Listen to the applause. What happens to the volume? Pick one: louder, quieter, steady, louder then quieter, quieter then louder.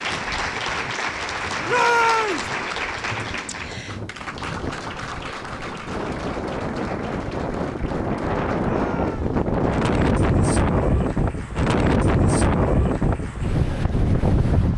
quieter.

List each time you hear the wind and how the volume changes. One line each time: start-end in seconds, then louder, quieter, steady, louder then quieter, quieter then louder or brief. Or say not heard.
0.0-14.7 louder.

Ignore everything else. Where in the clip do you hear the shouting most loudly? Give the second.
2 s.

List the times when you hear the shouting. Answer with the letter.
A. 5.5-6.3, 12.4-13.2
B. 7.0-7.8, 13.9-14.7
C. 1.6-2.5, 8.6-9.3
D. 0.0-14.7
C.